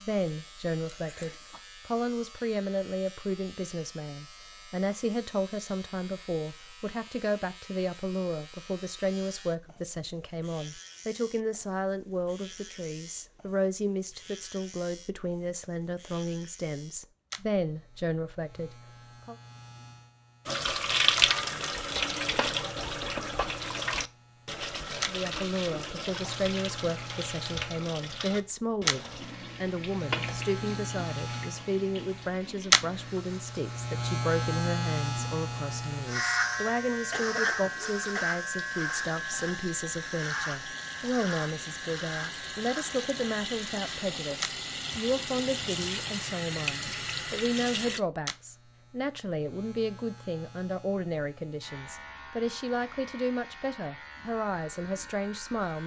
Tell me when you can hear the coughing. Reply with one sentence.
The coughing can be heard from 0.9 to 1.6 s and from 37.1 to 38.3 s.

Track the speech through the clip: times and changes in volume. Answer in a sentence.
The speech can be heard from 0.0 to 19.4 s, at a steady volume; and from 25.1 to 55.8 s, at a steady volume.